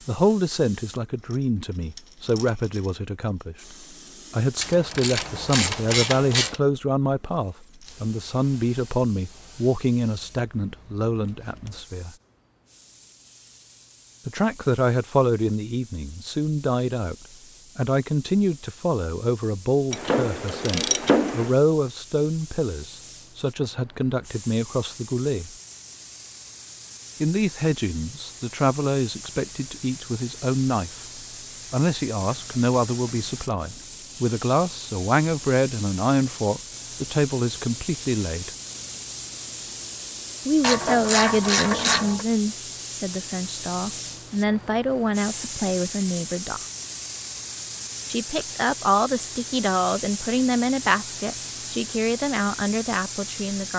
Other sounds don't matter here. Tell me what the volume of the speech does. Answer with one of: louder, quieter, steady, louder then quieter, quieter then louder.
steady.